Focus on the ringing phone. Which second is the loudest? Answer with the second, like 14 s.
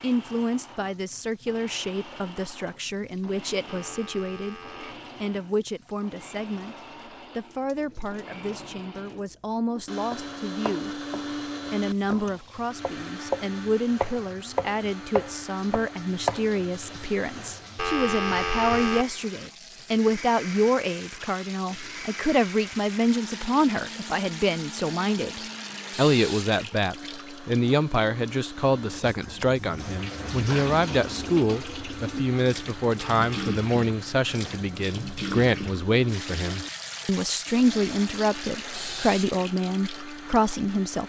18 s.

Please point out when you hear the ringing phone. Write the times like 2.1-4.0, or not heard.
3.6-5.0, 17.8-19.1, 33.0-33.6.